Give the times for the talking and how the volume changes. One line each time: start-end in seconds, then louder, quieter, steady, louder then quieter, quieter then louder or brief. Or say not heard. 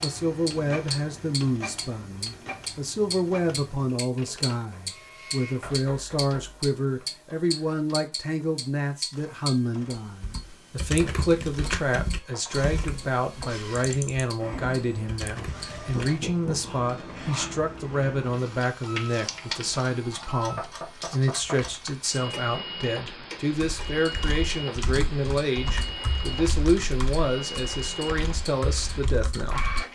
0.0-29.6 steady.